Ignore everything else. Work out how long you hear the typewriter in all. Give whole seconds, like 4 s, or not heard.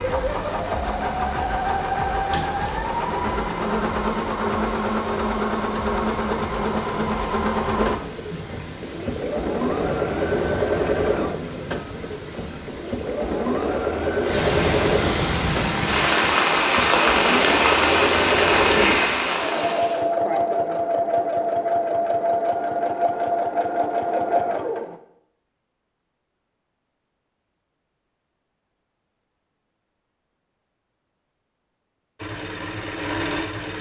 not heard.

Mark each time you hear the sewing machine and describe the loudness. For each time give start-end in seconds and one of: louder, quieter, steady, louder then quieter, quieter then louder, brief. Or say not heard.
0.0-25.0 steady
32.1-33.7 brief.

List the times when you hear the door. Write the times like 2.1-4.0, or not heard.
not heard.